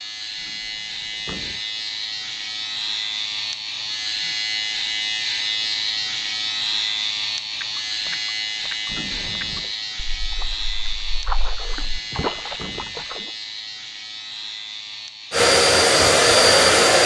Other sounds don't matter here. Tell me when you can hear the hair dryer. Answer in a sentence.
The hair dryer can be heard from 15.3 to 17.0 s.